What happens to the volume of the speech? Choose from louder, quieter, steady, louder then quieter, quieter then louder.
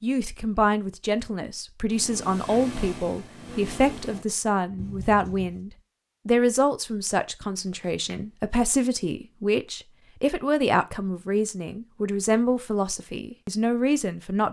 steady.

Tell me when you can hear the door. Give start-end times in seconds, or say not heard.
not heard.